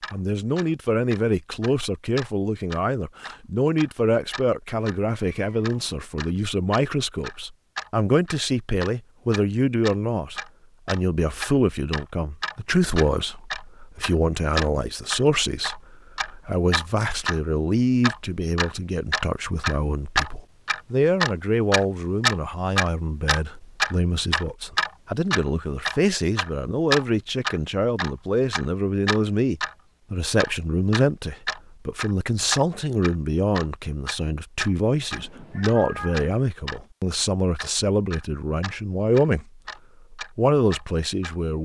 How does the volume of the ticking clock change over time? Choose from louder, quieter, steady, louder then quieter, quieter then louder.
louder then quieter.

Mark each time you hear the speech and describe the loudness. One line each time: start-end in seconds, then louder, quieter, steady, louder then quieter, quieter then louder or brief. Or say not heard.
0.1-41.5 steady.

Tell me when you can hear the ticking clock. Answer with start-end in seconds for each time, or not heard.
0.0-29.8, 30.4-36.8, 37.5-41.4.